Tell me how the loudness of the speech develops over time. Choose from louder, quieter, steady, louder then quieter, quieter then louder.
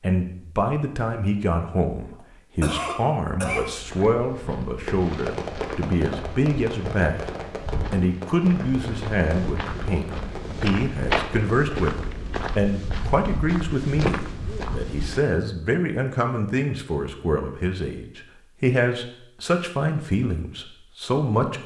steady.